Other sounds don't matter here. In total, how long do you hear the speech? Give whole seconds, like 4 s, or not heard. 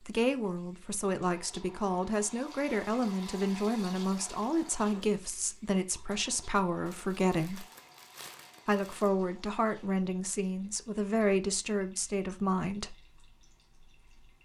12 s.